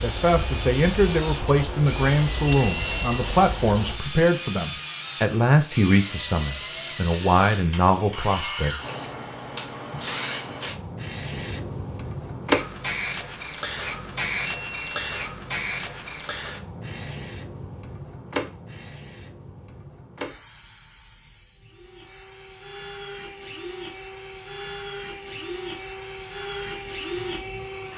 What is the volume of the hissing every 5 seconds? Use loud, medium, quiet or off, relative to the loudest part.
medium, medium, loud, medium, quiet, quiet.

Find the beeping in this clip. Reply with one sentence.
You can hear the beeping from 2.5 to 3.2 s and from 14.4 to 15.2 s.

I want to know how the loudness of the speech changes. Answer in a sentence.
The volume of the speech stays about the same.